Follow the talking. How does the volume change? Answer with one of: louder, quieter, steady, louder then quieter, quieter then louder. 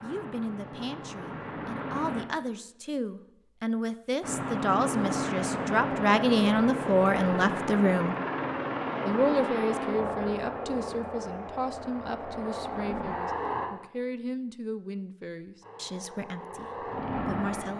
louder then quieter.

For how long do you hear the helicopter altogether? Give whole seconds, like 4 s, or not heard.
14 s.